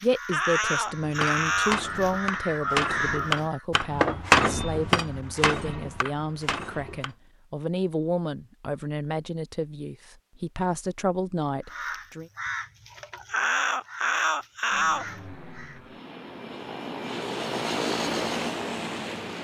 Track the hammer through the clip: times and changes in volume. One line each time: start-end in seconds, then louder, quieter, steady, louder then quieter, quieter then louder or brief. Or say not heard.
0.9-7.1 louder then quieter.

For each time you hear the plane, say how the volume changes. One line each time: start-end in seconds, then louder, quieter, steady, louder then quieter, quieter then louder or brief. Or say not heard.
14.7-19.3 louder.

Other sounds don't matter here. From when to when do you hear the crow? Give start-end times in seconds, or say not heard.
0.0-3.6, 11.7-15.8.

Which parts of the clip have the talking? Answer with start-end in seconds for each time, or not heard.
0.0-12.3.